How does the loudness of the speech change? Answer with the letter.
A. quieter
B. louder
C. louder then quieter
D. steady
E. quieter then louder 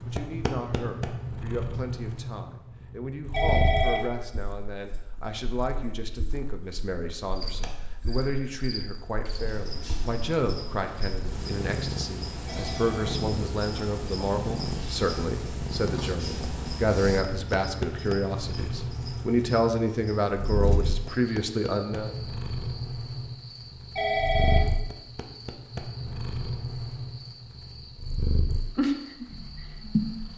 B.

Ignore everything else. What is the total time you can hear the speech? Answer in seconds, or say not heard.
22 s.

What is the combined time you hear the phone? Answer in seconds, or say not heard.
2 s.